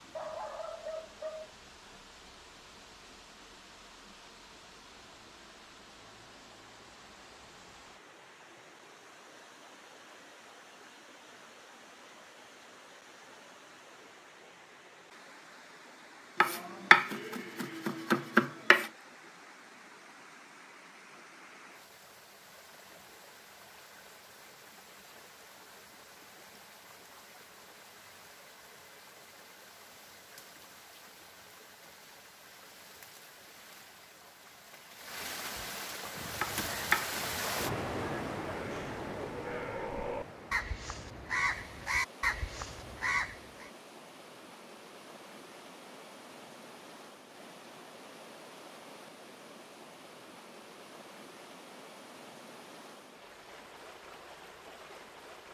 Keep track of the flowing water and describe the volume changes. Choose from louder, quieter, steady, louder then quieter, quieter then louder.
louder then quieter.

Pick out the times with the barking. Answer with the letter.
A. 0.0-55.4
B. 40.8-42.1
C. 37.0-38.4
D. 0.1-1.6
D.